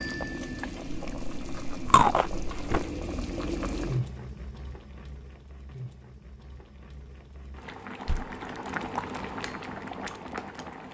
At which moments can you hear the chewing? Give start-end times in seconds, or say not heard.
0.8-2.9.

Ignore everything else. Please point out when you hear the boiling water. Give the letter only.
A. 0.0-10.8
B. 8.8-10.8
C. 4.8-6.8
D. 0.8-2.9
A.